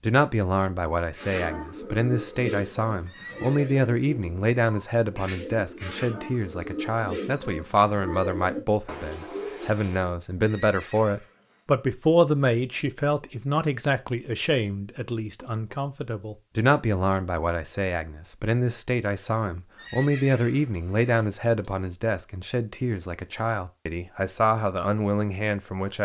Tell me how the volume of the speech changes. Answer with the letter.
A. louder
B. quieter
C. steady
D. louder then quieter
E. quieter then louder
C.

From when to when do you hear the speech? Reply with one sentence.
You can hear the speech from 0.0 to 25.9 s.